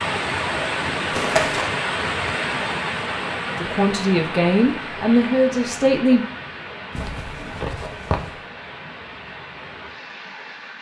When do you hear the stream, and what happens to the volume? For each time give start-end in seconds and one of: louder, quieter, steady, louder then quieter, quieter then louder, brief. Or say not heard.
0.0-10.7 quieter.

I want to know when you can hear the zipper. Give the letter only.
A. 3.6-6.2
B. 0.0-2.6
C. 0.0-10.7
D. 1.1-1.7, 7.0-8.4
D.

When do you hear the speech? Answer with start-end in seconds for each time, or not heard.
3.6-6.2.